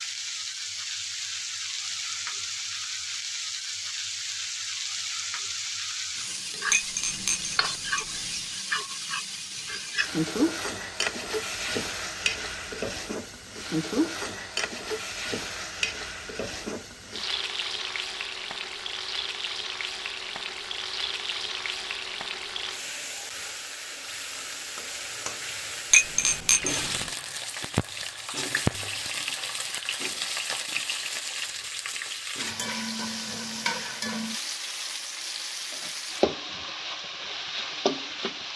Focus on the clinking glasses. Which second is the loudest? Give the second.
26 s.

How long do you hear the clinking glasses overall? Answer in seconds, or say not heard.
3 s.